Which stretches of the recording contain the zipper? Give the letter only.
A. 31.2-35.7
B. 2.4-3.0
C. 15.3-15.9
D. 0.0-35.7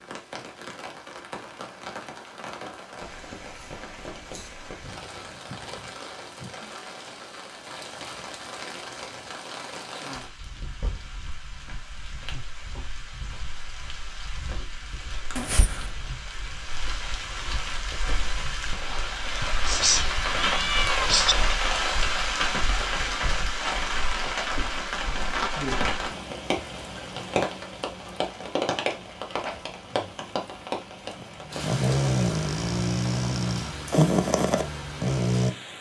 C.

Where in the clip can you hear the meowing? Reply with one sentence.
The meowing can be heard from 19.4 to 21.4 s.